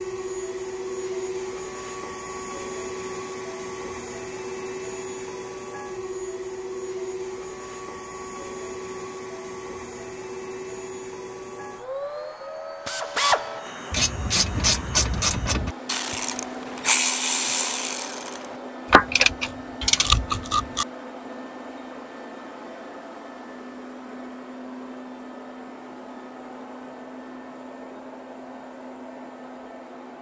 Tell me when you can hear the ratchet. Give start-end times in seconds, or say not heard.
12.8-20.9.